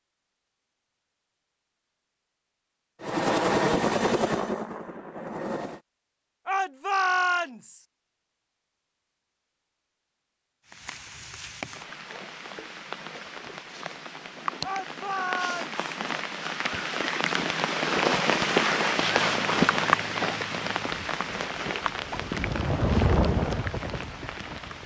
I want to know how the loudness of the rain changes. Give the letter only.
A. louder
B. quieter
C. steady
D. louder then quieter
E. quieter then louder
D.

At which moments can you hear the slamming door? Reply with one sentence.
The slamming door can't be heard in this clip.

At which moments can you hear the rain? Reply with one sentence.
The rain can be heard from 10.7 to 24.8 s.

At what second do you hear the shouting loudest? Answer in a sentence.
The loudest moment of the shouting is at 7 seconds.